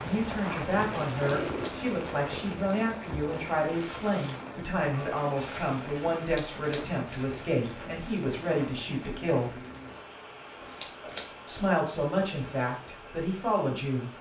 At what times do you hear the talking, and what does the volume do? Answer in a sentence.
You can hear the talking from 0.0 to 9.6 s, at a steady volume; and briefly from 11.4 to 14.1 s.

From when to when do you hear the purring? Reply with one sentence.
The purring can be heard from 0.0 to 2.7 s.